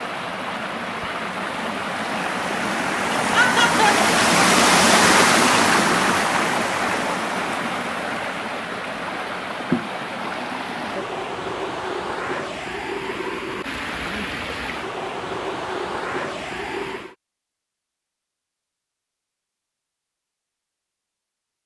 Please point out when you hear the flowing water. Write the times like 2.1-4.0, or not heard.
0.0-17.1.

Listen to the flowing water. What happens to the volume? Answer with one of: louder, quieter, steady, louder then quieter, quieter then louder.
louder then quieter.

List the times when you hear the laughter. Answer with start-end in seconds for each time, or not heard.
3.1-4.0.